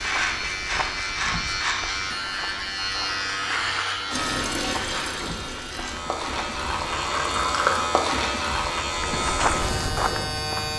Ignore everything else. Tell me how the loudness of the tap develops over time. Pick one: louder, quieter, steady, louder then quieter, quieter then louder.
quieter then louder.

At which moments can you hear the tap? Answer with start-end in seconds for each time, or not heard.
4.1-8.8.